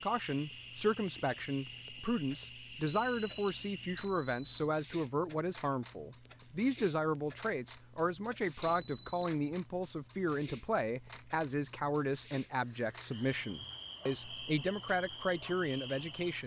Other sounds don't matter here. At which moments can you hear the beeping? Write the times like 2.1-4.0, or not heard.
2.9-4.7, 8.6-9.3.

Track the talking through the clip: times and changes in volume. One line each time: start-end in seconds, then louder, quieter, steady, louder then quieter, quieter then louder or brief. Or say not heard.
0.0-16.4 steady.